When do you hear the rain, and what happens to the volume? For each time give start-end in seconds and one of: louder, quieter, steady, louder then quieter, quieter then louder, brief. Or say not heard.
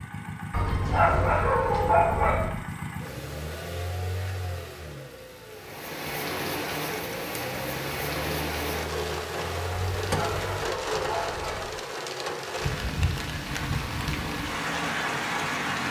5.5-15.8 steady.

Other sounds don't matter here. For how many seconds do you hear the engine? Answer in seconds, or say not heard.
13 s.